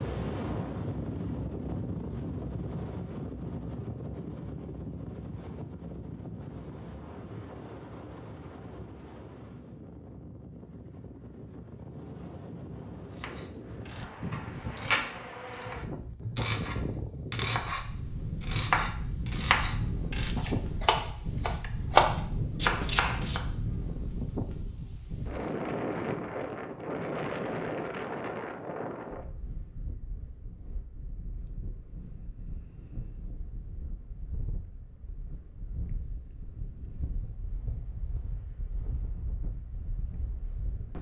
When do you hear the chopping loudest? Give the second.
22 s.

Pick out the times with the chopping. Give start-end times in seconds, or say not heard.
13.2-23.4.